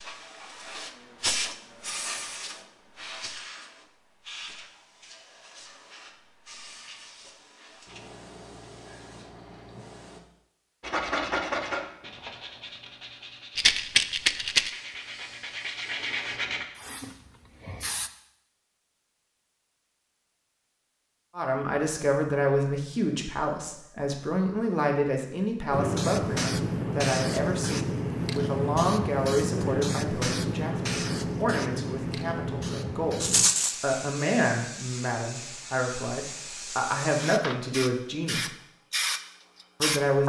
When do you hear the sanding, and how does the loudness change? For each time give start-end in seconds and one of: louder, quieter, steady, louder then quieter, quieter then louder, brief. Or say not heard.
10.8-16.6 quieter then louder.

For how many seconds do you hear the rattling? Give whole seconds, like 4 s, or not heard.
2 s.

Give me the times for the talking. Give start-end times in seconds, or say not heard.
21.4-38.5, 39.8-40.2.